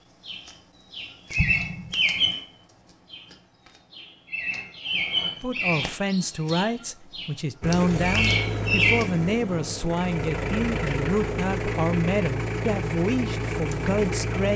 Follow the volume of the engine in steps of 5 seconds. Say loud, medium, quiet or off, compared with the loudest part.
off, loud, loud.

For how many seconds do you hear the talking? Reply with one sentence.
You can hear the talking for 9 seconds altogether.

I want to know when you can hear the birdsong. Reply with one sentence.
You can hear the birdsong from 0.2 to 2.5 s and from 3.1 to 9.1 s.